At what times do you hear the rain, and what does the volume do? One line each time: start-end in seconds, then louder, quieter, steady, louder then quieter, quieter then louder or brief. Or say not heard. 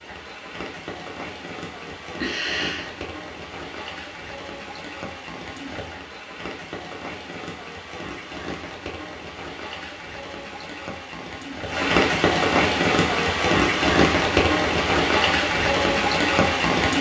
0.0-16.9 louder.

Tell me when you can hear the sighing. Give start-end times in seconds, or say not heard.
1.9-3.0.